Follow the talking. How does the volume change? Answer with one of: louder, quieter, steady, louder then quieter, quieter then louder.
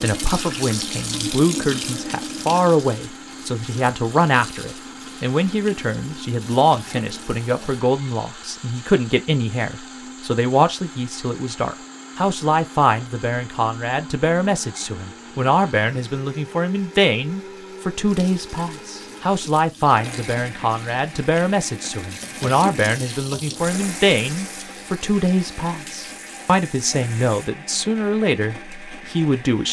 steady.